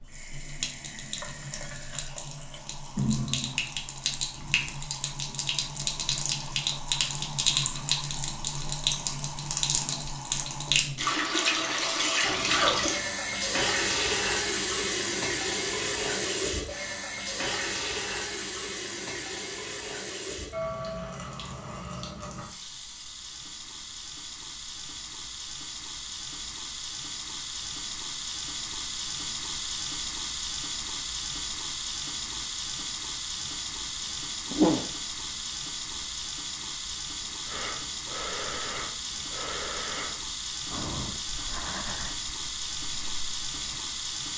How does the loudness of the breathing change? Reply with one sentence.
The loudness of the breathing goes down.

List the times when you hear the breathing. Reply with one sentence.
You can hear the breathing from 37.5 to 43.9 s.